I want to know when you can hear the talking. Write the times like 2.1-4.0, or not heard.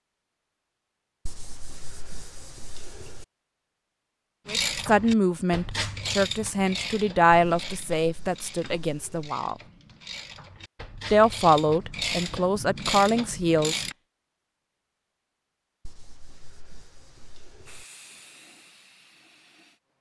4.5-9.6, 11.1-13.8.